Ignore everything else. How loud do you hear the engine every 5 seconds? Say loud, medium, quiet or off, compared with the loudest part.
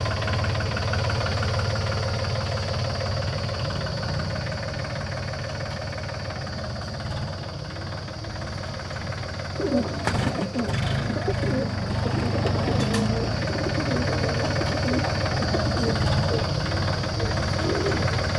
loud, medium, loud, loud.